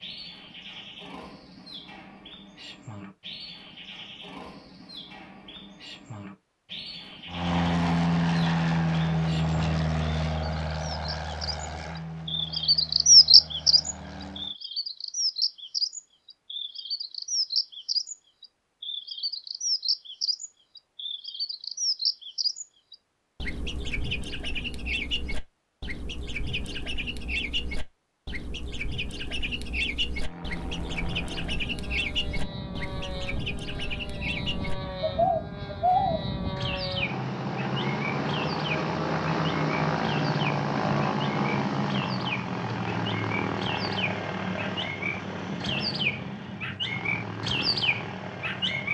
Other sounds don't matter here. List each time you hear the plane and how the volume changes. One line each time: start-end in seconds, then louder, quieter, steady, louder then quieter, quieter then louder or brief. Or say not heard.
7.2-14.6 quieter
30.1-48.8 louder then quieter.